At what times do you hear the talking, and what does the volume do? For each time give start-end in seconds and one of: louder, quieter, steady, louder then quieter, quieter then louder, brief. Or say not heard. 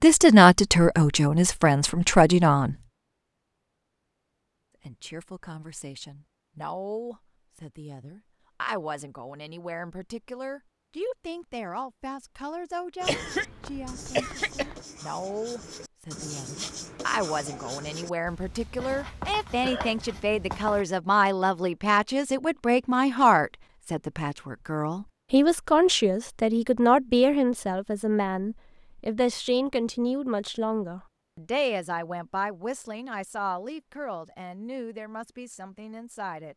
0.0-2.8 brief
4.8-36.5 louder then quieter.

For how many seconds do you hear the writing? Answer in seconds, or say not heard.
8 s.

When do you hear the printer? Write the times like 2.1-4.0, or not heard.
not heard.